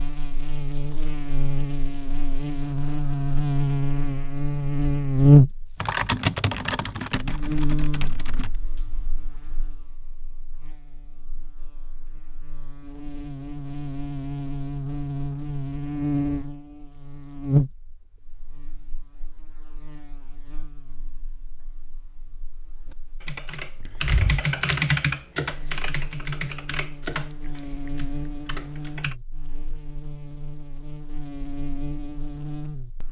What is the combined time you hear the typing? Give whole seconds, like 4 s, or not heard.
9 s.